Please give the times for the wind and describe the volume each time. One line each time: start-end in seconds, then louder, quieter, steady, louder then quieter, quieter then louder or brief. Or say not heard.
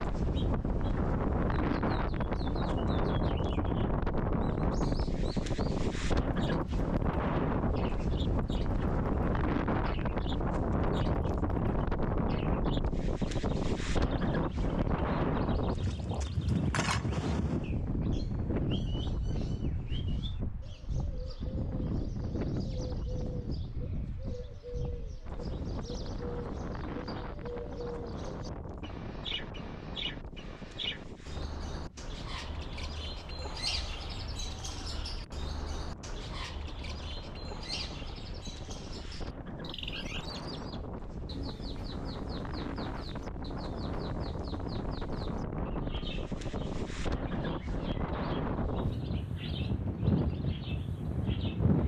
0.0-51.8 quieter then louder.